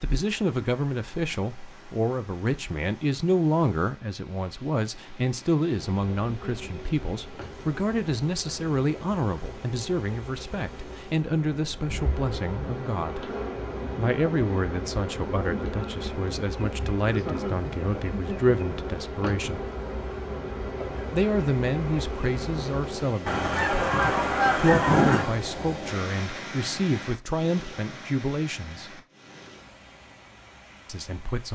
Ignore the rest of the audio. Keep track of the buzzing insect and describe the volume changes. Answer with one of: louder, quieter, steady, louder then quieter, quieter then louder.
louder.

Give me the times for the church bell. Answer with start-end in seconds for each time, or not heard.
not heard.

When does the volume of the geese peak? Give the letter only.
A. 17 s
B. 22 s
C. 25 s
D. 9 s
C.